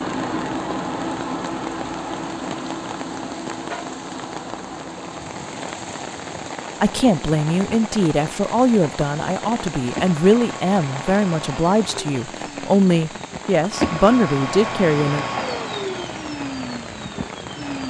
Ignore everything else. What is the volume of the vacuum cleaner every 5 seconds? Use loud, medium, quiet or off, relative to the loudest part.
loud, medium, loud, loud.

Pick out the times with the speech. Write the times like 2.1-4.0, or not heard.
6.8-15.2.